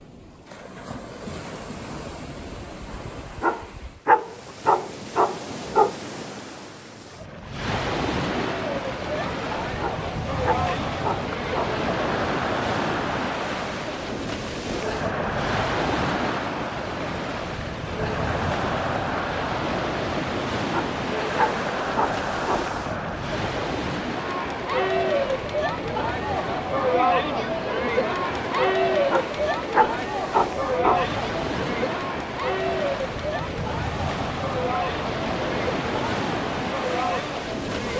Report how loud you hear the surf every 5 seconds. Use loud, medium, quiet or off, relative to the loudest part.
medium, loud, loud, loud, loud, medium, loud, loud.